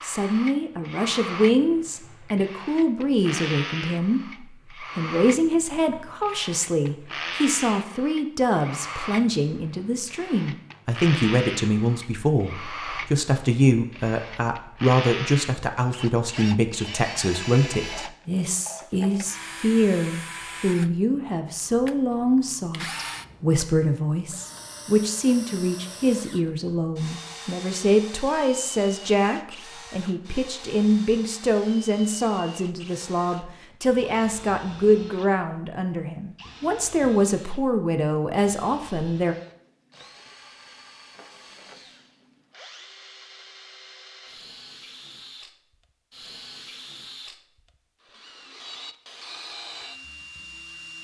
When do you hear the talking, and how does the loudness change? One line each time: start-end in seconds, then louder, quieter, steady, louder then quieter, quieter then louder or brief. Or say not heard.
0.0-39.4 steady.